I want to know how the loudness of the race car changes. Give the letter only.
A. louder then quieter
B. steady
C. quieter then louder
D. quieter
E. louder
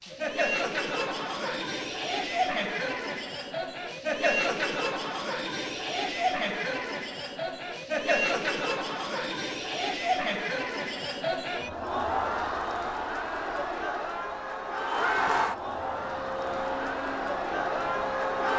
E.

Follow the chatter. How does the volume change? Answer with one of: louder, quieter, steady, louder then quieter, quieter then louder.
steady.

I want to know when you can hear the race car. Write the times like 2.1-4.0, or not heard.
13.9-18.5.